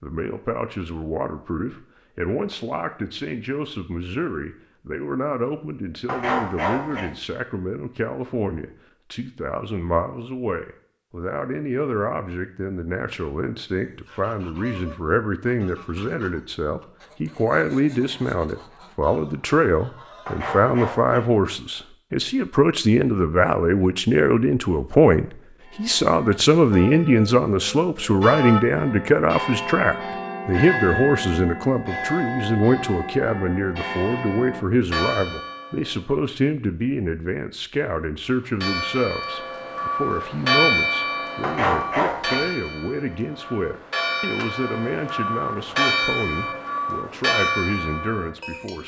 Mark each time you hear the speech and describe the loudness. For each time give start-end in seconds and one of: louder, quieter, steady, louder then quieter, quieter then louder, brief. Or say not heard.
0.0-48.8 louder then quieter.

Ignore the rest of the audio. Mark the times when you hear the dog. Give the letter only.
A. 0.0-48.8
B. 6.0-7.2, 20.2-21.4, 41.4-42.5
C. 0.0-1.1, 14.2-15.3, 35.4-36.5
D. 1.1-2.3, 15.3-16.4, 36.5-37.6
B.